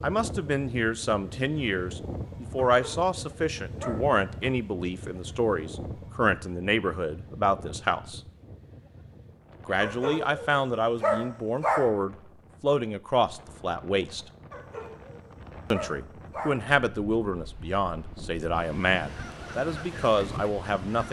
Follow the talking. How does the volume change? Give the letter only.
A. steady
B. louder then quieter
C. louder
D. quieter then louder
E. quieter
A.